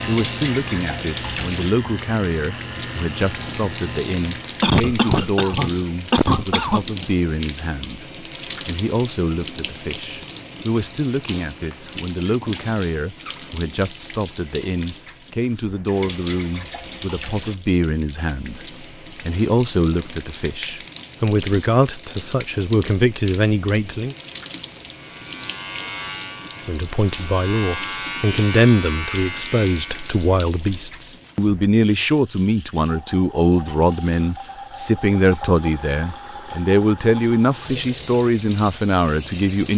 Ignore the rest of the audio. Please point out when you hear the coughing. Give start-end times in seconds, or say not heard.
4.6-6.8.